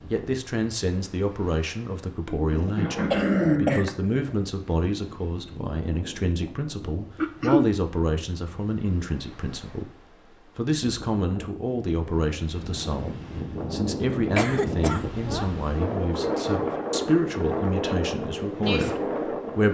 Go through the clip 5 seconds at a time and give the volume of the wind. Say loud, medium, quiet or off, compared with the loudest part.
quiet, quiet, medium, loud.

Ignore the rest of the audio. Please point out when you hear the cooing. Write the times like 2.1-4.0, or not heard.
2.4-3.8.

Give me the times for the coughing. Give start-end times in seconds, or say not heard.
2.5-4.3, 7.2-7.7, 14.2-15.5.